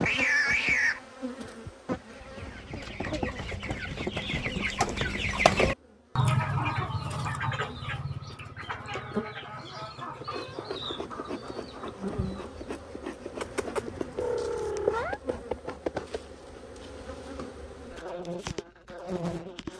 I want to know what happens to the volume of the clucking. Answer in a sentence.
The volume of the clucking goes up, then down.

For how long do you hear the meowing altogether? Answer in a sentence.
You can hear the meowing for 4 seconds altogether.